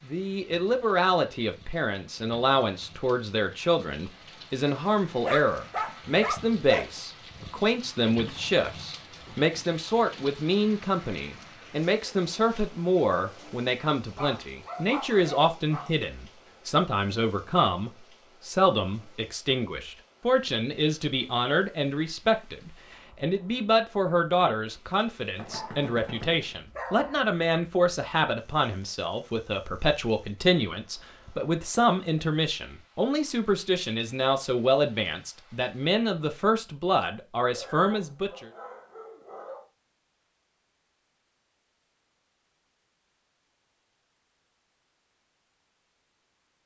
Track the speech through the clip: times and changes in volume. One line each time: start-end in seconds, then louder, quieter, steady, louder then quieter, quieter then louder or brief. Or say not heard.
0.1-38.5 steady.